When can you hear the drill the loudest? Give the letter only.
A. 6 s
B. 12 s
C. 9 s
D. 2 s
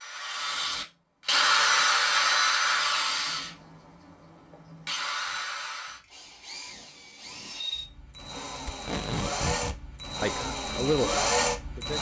D.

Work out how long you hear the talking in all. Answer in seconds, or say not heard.
2 s.